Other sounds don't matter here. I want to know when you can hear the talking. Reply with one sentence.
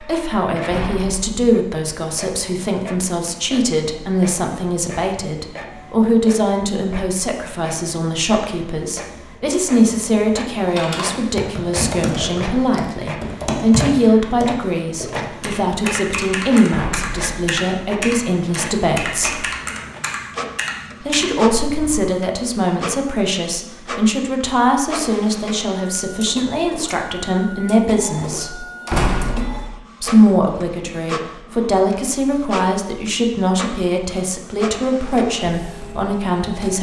The talking can be heard from 0.0 to 19.4 s, from 21.0 to 28.6 s and from 30.0 to 36.7 s.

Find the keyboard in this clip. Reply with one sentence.
You can hear the keyboard from 10.7 to 22.1 s.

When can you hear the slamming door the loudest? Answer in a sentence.
The volume of the slamming door peaks at 29 seconds.